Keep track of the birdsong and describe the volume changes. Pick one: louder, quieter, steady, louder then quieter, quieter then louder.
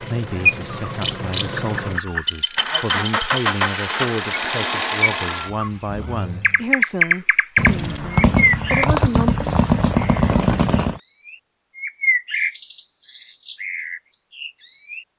louder then quieter.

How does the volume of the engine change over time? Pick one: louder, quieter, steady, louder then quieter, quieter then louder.
louder then quieter.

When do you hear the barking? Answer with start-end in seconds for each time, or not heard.
not heard.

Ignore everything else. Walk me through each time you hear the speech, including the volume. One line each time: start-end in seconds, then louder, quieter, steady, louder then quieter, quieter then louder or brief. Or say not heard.
0.0-9.3 steady.